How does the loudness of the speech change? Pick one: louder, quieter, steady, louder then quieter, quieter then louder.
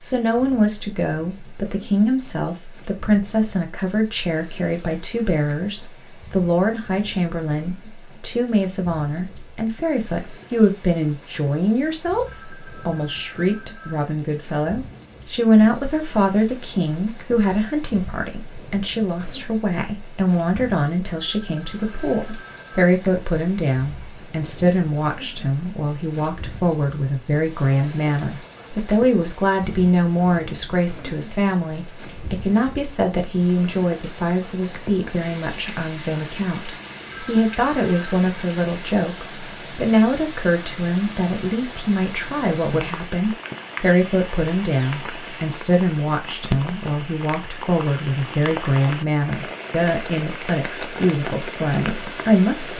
steady.